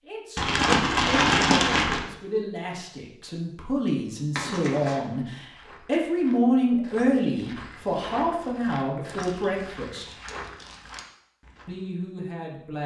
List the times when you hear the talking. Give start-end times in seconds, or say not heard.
0.1-10.2, 11.7-12.8.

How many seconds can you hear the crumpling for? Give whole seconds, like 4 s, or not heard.
4 s.